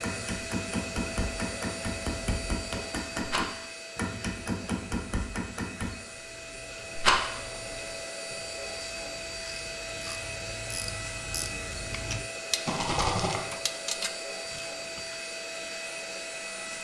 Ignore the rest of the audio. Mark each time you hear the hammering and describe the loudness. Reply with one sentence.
You can hear the hammering from 0.0 to 6.0 s, at a steady volume.